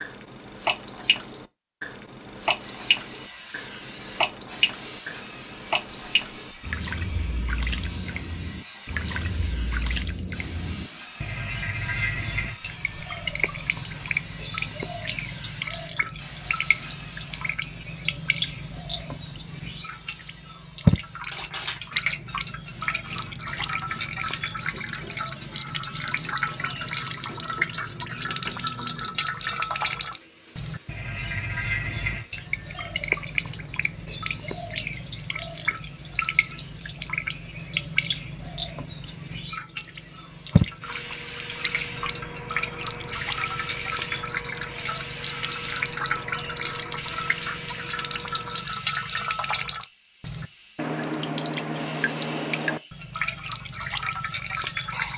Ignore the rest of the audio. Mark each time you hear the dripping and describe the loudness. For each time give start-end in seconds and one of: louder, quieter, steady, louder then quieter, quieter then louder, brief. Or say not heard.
0.0-55.1 steady.